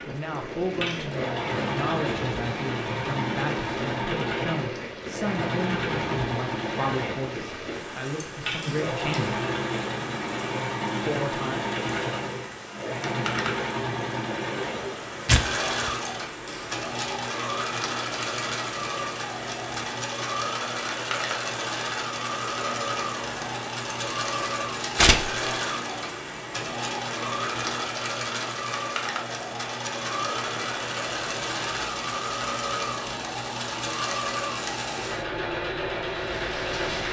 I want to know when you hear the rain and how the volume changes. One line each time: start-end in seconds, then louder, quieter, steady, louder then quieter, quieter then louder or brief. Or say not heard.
0.0-37.0 steady.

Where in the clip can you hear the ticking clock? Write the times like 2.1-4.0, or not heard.
not heard.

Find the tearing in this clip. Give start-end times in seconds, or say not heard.
15.2-15.9, 24.9-25.4.